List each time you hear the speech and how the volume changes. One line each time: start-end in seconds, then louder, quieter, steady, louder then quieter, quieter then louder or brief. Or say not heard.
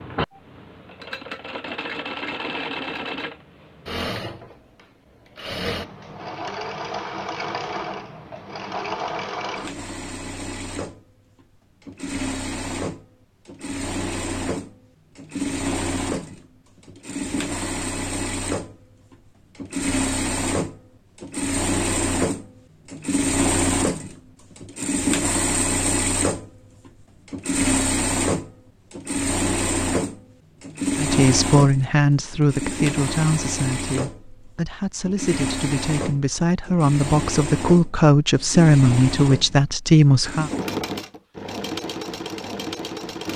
30.9-40.5 quieter then louder.